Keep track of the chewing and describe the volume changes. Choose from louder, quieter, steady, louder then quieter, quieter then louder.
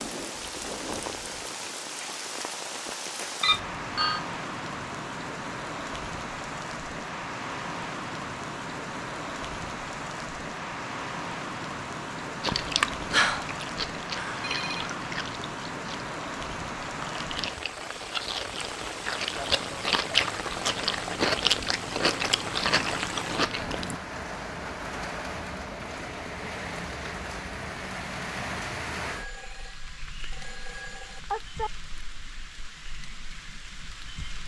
quieter then louder.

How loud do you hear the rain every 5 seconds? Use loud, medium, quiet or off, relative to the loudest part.
loud, loud, loud, loud, loud, loud, medium.